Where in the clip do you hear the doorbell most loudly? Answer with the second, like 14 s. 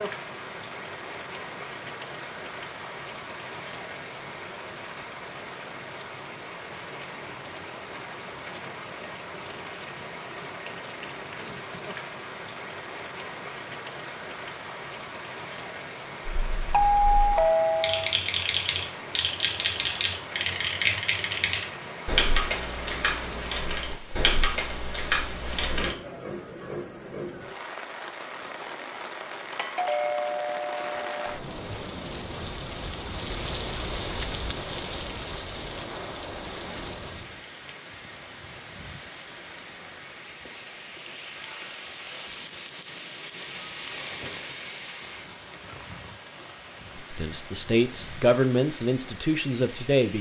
17 s.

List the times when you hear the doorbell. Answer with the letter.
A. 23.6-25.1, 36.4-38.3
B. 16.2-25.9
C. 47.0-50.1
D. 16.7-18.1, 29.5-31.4
D.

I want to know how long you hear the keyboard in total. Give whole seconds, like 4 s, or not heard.
10 s.